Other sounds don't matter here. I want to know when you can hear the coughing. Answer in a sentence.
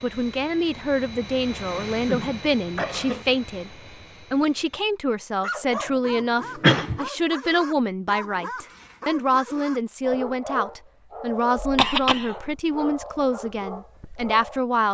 You can hear the coughing from 1.9 to 3.2 s, from 6.6 to 7.0 s and from 11.6 to 12.3 s.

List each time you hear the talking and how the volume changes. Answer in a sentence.
You can hear the talking from 0.0 to 14.8 s, at a steady volume.